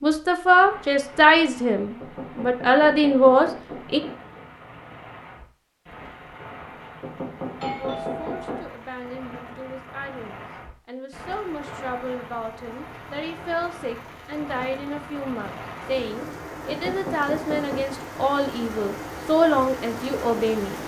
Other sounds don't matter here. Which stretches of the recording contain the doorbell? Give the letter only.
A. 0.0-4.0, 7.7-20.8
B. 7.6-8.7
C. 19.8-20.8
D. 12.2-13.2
B.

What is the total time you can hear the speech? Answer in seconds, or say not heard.
17 s.